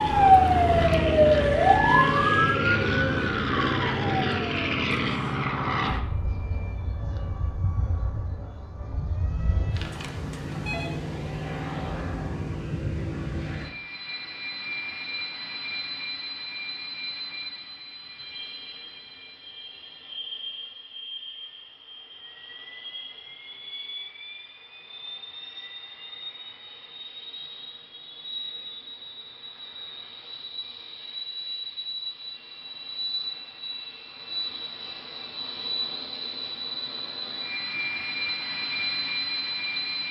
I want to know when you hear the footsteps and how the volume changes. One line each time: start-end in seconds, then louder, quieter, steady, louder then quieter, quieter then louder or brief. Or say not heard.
not heard.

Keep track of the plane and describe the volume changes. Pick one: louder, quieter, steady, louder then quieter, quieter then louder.
quieter then louder.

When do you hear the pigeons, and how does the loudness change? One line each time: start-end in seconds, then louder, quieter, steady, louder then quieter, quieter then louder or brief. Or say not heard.
not heard.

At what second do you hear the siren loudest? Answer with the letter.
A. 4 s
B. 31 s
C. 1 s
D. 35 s
C.